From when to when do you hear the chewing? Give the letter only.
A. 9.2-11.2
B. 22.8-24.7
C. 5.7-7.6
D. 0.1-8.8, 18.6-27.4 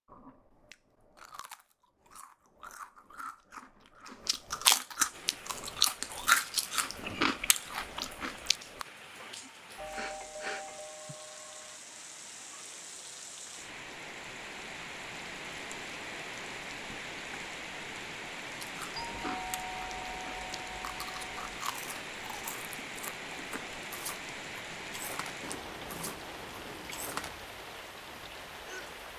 D.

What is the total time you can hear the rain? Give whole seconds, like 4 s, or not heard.
24 s.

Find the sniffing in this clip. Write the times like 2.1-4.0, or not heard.
9.2-11.2.